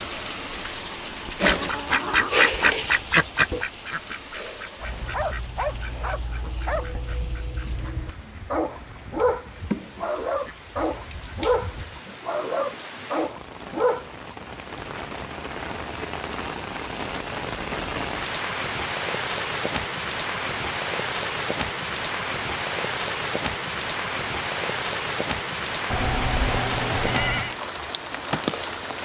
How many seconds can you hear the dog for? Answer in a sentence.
You can hear the dog for 10 seconds altogether.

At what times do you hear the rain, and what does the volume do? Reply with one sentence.
The rain can be heard from 0.0 to 29.0 s, getting quieter then louder.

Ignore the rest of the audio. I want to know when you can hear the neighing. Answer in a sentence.
The neighing can be heard from 25.9 to 27.6 s.